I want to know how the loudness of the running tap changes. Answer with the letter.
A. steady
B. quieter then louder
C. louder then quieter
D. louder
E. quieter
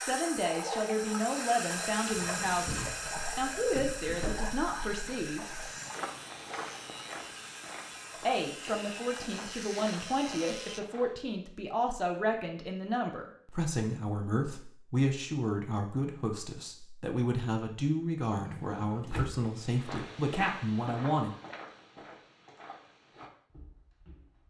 E.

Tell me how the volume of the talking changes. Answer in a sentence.
The loudness of the talking stays about the same.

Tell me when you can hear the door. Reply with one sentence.
The door can be heard from 2.1 to 4.5 s and from 18.4 to 19.4 s.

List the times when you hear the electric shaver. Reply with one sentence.
You can hear the electric shaver from 5.5 to 10.8 s.